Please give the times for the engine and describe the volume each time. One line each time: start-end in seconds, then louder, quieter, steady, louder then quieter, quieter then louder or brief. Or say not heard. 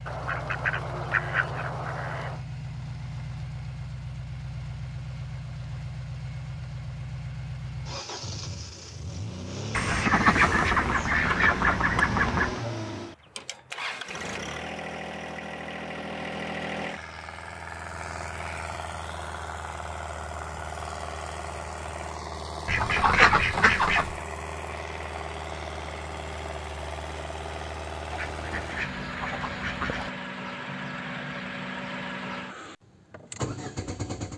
0.0-34.3 steady.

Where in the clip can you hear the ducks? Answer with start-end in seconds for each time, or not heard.
0.1-2.4, 9.7-12.6, 22.6-24.1, 28.1-30.1.